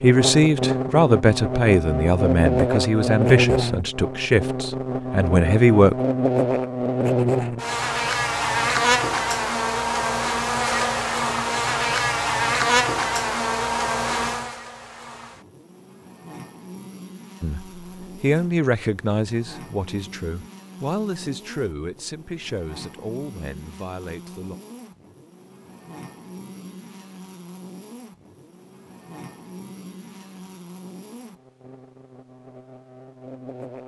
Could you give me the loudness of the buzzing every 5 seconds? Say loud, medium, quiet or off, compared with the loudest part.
loud, loud, loud, quiet, quiet, quiet, quiet.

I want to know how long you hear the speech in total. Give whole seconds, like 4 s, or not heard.
13 s.